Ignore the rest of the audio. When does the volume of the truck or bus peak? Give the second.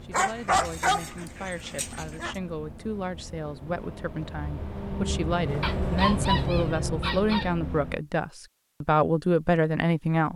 6 s.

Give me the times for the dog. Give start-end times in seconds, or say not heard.
0.1-2.4, 5.6-7.5.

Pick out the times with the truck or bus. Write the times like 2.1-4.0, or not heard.
0.0-8.1.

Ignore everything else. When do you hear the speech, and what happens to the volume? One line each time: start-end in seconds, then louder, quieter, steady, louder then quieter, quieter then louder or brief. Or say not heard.
0.0-10.3 louder.